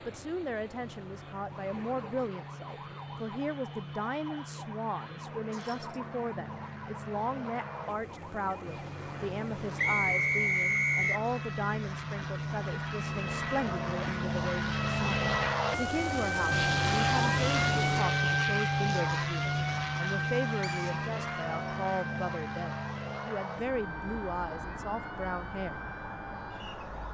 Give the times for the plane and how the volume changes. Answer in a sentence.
The plane can be heard from 0.0 to 27.0 s, getting louder then quieter.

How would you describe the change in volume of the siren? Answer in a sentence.
The volume of the siren goes up, then down.